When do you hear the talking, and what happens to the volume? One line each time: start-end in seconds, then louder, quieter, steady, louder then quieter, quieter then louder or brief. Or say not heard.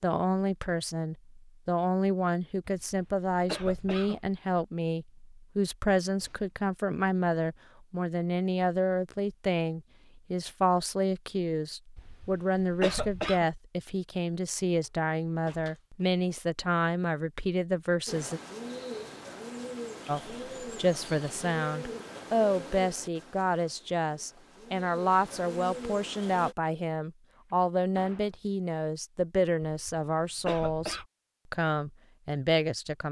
0.0-18.4 steady
20.1-33.0 steady.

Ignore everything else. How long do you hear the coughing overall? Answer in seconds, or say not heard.
5 s.